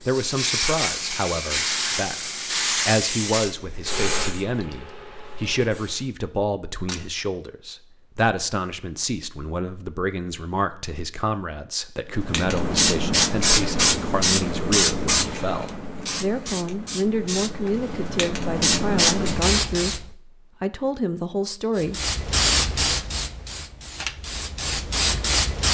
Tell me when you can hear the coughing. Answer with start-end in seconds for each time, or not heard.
not heard.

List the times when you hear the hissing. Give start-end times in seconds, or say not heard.
0.0-6.1, 12.2-20.1, 21.8-25.6.